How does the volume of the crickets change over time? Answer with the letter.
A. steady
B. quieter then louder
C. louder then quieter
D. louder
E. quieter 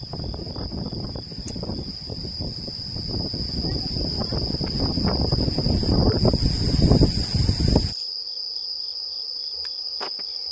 D.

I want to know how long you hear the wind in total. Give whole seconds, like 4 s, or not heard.
8 s.